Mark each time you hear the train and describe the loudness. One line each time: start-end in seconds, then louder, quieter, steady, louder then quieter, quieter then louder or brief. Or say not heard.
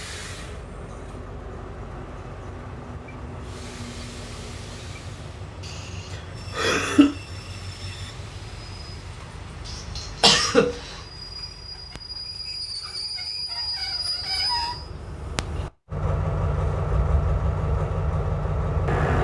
0.0-19.1 louder.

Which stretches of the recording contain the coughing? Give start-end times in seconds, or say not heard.
5.7-7.2, 9.7-10.9.